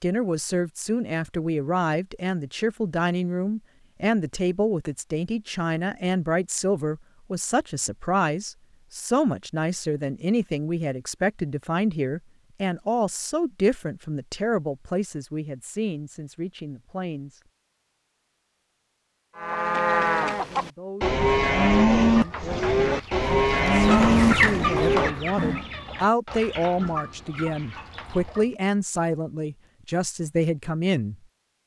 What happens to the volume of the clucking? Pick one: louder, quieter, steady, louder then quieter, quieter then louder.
louder then quieter.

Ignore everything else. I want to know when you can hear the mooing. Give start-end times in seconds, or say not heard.
19.4-25.6.